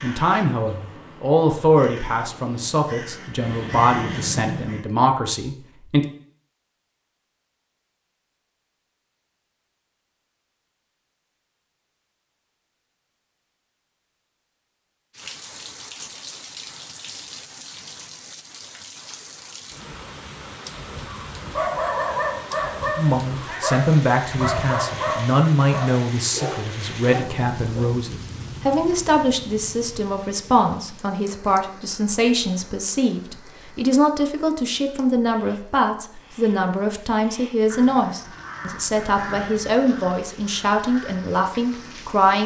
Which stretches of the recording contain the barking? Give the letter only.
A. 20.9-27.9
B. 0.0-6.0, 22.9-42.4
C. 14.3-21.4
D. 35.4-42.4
A.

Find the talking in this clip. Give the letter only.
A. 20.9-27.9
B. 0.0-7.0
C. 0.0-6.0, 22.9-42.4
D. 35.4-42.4
C.